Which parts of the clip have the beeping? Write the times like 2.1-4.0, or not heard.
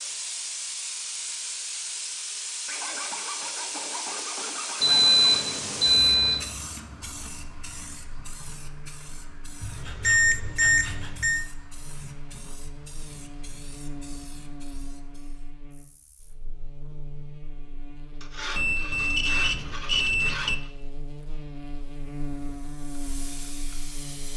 4.8-6.5, 9.6-11.4, 18.6-20.6.